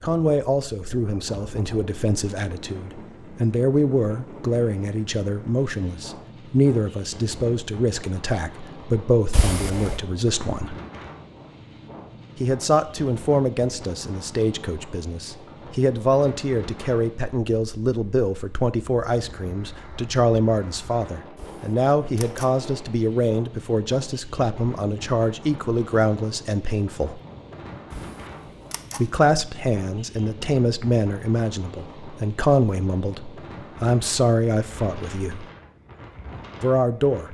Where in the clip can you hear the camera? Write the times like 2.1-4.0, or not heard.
9.3-10.0, 21.4-22.6, 27.9-29.1.